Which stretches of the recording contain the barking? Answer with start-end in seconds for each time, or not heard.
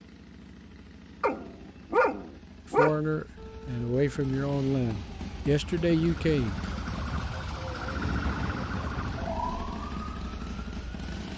1.2-3.0.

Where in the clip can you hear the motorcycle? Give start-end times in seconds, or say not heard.
0.0-11.3.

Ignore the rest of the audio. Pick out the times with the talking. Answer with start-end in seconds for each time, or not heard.
2.7-6.6.